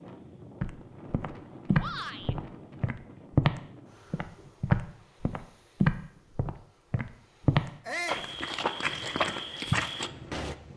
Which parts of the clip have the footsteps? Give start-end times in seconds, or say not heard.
0.6-10.6.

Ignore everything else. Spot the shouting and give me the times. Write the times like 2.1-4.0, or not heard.
1.8-2.4, 7.8-8.3.